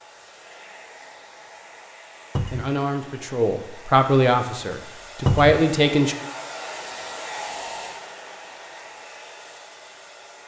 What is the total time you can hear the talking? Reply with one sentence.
The talking can be heard for 4 seconds in total.